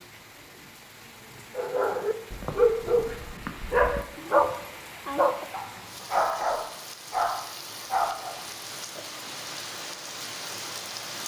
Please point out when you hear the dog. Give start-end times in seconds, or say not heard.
1.6-8.4.